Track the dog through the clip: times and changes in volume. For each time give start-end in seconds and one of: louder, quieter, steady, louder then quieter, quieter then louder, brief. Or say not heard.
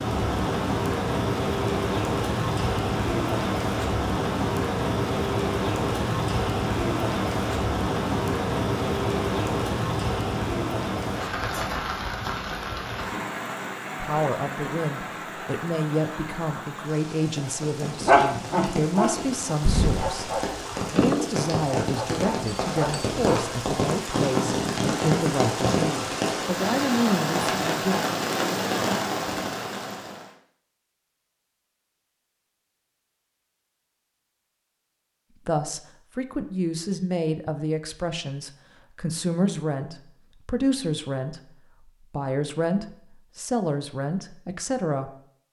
18.1-23.7 quieter.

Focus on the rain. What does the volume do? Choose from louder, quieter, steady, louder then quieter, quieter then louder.
quieter then louder.